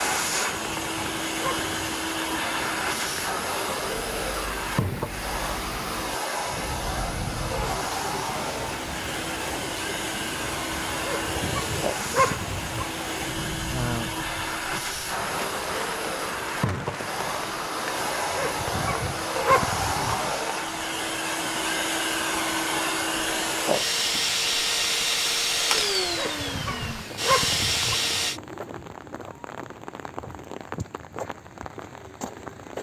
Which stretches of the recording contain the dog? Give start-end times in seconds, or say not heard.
0.5-1.9, 11.0-12.8, 18.3-20.1, 26.1-27.9.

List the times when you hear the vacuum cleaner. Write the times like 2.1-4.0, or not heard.
0.0-28.4.